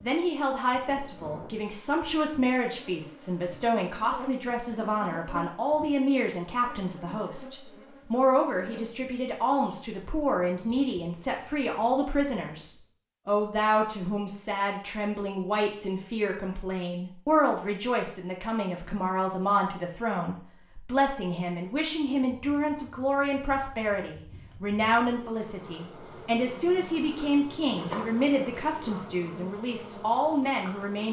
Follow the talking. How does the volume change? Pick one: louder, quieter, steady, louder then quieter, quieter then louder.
steady.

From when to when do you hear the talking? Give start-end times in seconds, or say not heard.
0.0-31.0.